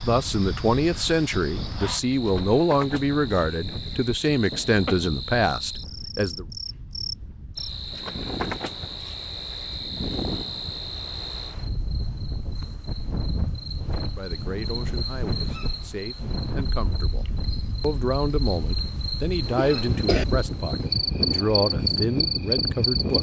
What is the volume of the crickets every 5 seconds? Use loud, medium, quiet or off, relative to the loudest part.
medium, medium, medium, medium, loud.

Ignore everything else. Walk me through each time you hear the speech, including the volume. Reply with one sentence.
You can hear the speech from 0.0 to 6.5 s, at a steady volume; and from 14.1 to 23.1 s, getting louder.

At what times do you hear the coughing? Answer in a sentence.
You can hear the coughing from 4.3 to 5.0 s and from 19.6 to 20.2 s.